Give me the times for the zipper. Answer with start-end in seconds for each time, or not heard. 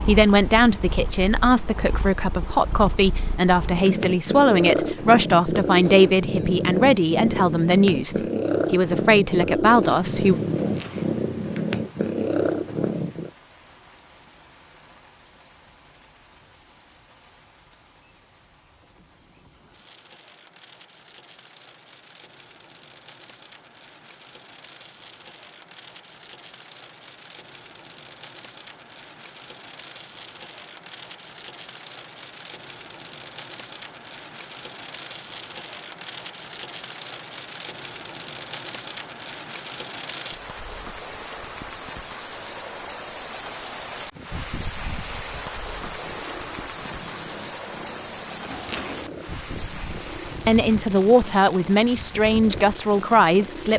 10.6-11.2, 48.5-49.2.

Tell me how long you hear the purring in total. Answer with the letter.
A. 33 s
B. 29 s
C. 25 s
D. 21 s
D.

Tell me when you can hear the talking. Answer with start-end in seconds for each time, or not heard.
0.0-10.4, 50.5-53.7.